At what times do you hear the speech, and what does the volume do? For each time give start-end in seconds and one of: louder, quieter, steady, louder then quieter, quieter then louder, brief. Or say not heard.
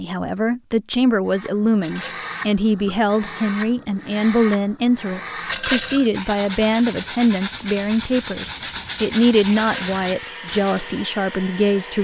0.0-11.9 steady.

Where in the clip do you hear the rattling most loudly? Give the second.
6 s.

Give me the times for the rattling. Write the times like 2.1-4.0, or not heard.
1.8-2.3, 5.5-6.1, 9.6-10.0.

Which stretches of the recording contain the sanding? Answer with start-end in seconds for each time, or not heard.
1.2-10.8.